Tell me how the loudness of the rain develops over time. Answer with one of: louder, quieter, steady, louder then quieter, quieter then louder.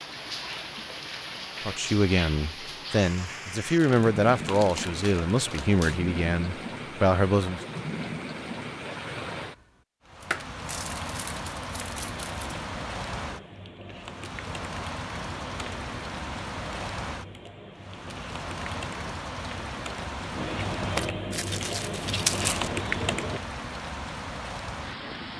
steady.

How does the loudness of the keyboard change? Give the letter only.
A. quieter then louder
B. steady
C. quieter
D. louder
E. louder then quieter
D.